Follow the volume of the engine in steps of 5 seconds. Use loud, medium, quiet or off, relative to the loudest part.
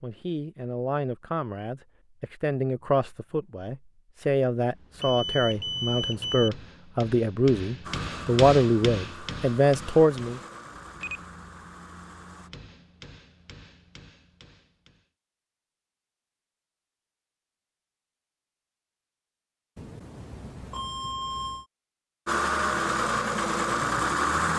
off, quiet, quiet, off, loud.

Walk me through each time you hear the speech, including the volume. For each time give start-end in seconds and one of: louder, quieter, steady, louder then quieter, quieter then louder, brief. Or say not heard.
0.0-10.4 louder.